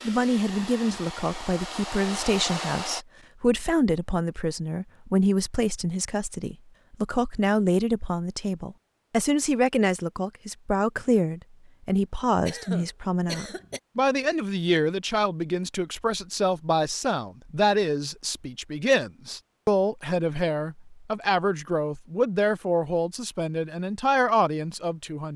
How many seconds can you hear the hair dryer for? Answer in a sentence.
The hair dryer can be heard for 3 seconds in total.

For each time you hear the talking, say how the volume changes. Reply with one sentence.
You can hear the talking from 0.1 to 25.3 s, at a steady volume.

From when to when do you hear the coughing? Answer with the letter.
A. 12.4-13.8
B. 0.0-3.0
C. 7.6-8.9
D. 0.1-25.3
A.